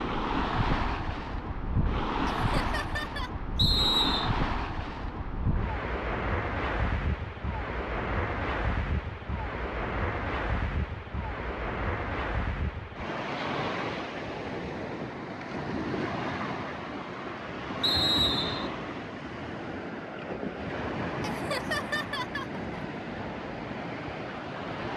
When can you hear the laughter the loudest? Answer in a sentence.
The volume of the laughter peaks at 22 seconds.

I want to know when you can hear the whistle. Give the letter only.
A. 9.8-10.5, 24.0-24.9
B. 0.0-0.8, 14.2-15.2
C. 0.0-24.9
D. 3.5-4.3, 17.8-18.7
D.